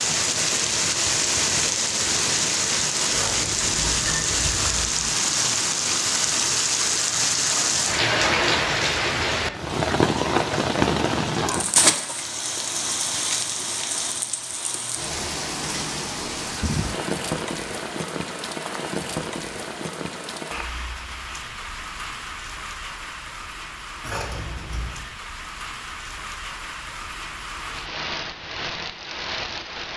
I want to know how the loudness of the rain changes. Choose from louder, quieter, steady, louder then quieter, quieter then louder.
quieter.